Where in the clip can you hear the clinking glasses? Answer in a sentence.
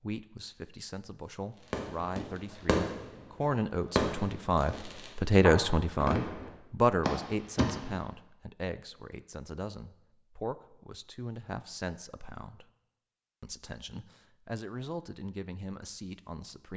The clinking glasses can't be heard in this clip.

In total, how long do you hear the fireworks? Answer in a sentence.
You can hear the fireworks for 6 seconds altogether.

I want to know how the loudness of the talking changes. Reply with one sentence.
The volume of the talking goes up, then down.